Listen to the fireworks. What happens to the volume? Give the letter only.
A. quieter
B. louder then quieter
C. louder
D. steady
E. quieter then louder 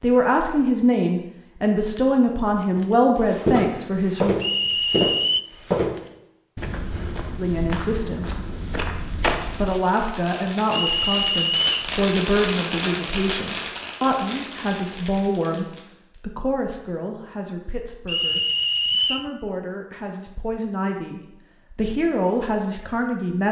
B.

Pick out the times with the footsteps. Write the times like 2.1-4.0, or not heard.
2.8-9.8.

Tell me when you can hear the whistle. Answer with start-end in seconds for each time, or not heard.
4.4-5.5, 10.7-11.9, 18.1-19.3.